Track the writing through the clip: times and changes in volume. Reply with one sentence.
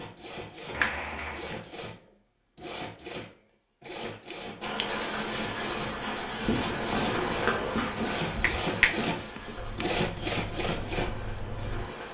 You can hear the writing from 6.4 to 11.8 s, getting quieter.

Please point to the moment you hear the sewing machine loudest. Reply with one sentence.
The volume of the sewing machine peaks at 10 seconds.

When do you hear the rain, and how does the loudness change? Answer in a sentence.
The rain can be heard from 4.6 to 12.0 s, getting quieter.